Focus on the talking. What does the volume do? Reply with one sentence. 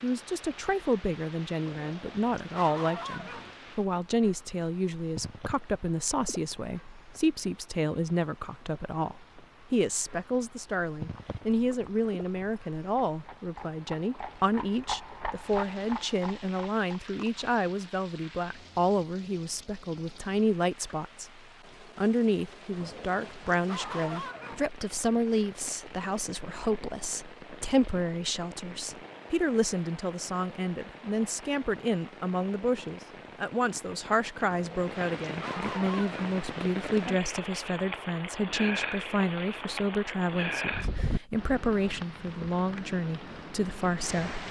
The volume of the talking stays about the same.